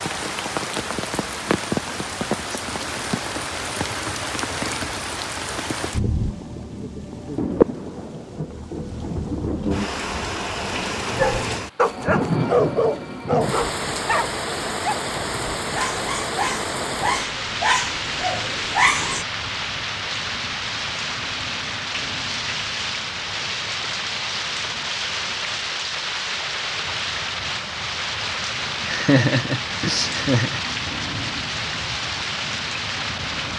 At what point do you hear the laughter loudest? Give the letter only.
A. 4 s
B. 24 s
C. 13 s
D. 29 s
D.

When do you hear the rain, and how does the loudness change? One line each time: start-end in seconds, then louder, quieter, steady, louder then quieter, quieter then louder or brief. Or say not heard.
0.0-33.5 steady.